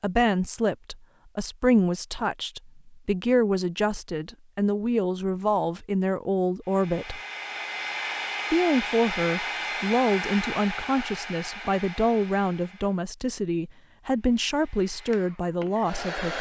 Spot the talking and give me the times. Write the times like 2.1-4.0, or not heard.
0.0-7.2, 8.5-16.3.